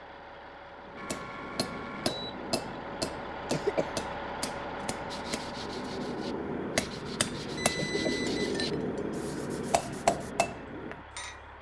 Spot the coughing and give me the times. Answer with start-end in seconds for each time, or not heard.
3.5-3.9, 7.8-8.3.